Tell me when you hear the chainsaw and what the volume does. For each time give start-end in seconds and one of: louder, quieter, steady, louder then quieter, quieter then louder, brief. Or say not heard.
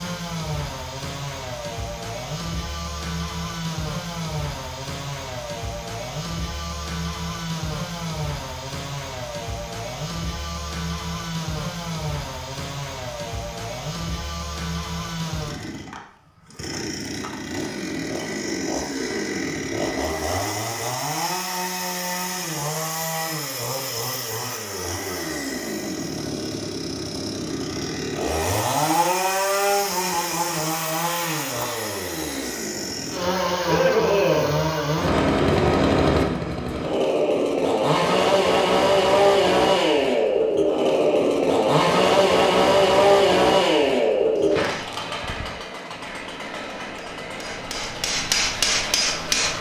0.0-49.5 louder.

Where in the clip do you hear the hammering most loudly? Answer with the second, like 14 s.
48 s.